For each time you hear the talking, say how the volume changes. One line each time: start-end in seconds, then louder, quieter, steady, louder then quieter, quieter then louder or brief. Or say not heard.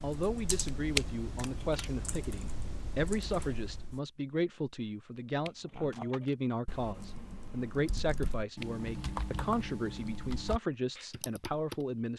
0.0-12.1 steady.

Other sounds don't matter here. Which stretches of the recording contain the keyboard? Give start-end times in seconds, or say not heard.
0.0-4.0, 5.7-11.8.